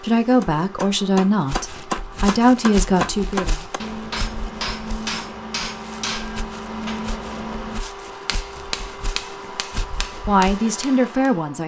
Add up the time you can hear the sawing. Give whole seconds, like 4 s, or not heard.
not heard.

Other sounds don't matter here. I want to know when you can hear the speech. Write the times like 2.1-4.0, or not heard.
0.0-3.5, 10.2-11.6.